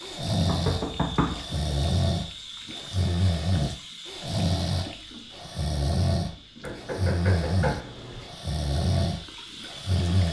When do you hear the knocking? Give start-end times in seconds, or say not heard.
0.5-1.6, 6.6-8.3.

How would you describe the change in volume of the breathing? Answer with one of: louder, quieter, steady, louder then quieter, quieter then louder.
steady.